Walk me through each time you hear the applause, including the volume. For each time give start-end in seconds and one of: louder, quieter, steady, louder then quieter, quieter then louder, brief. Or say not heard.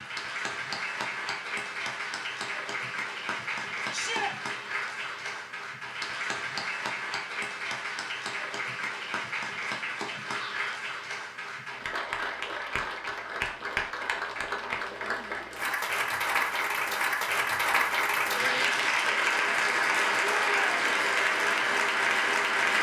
0.0-22.7 louder.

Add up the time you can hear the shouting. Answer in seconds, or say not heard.
2 s.